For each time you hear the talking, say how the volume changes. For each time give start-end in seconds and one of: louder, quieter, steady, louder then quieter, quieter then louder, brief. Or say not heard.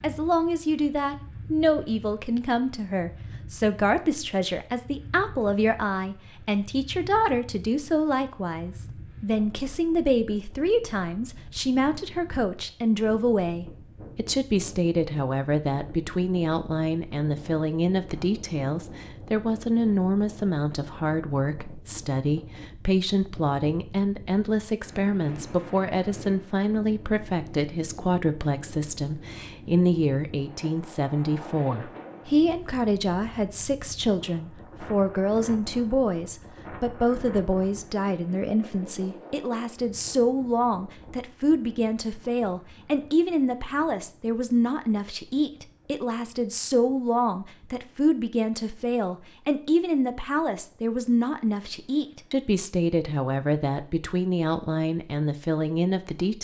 0.0-56.4 steady.